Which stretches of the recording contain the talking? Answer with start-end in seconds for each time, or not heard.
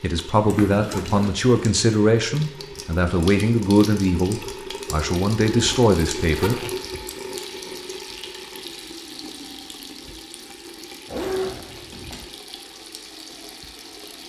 0.0-6.6.